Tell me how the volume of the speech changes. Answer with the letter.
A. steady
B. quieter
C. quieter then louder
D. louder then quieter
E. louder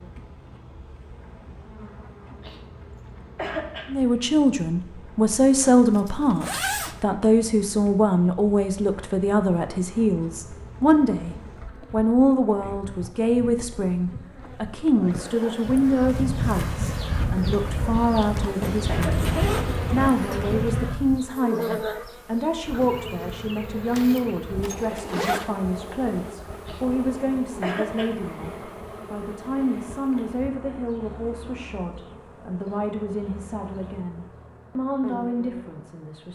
B.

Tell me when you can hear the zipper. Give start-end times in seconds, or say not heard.
5.4-7.0, 18.6-20.1, 24.6-25.5.